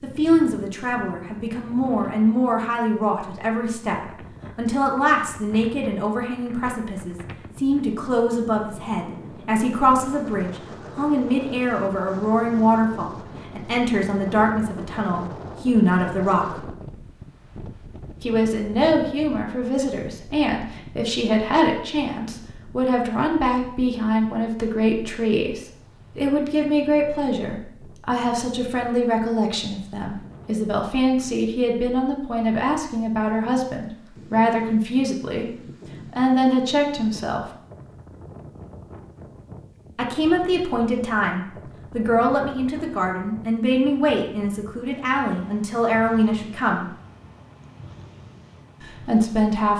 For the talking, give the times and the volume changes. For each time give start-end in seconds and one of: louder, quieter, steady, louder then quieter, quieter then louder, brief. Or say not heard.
0.0-16.7 steady
18.2-35.5 steady
36.1-37.5 brief
40.0-46.9 steady
48.8-49.7 brief.